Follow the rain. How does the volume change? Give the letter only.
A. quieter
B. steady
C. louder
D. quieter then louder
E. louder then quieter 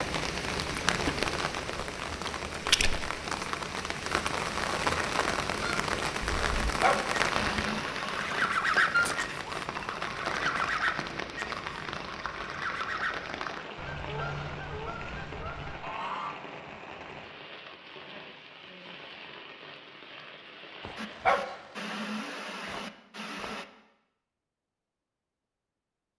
A.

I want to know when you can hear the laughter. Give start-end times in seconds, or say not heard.
not heard.